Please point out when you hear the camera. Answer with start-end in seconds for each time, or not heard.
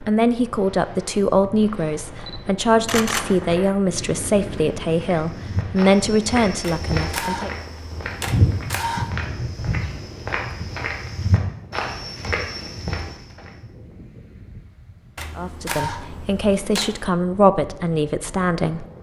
2.1-3.4, 6.6-9.1, 15.2-17.1.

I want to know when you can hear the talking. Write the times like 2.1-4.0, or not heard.
0.0-7.5, 15.3-18.9.